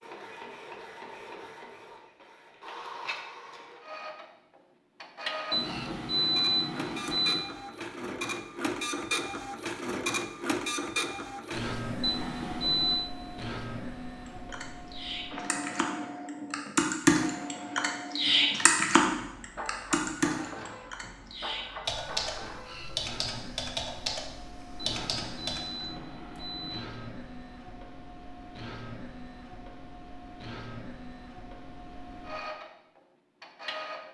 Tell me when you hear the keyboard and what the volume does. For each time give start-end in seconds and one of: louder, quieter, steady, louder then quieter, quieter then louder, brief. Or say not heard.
14.5-25.9 louder then quieter.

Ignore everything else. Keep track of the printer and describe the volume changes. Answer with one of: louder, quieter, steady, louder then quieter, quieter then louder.
louder then quieter.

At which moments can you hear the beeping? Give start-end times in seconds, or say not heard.
5.5-7.5, 12.0-13.1, 24.8-26.8.